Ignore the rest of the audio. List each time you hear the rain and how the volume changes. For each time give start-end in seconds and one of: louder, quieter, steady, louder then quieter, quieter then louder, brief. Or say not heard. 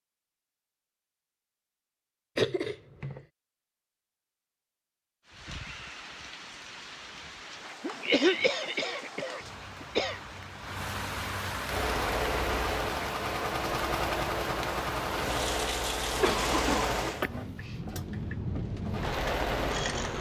5.2-20.1 louder.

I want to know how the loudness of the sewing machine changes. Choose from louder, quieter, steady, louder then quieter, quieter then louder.
steady.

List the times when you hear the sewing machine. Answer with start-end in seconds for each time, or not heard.
11.7-20.1.